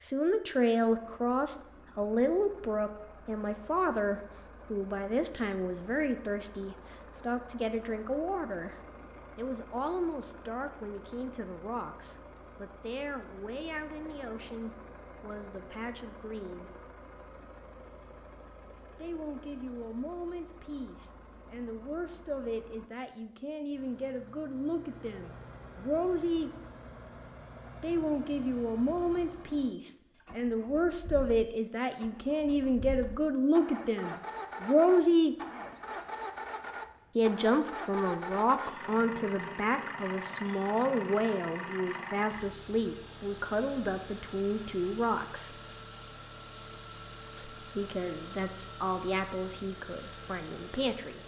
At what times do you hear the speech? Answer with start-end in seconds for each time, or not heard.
0.0-16.9, 18.9-26.5, 27.8-35.4, 37.1-45.5, 47.4-51.2.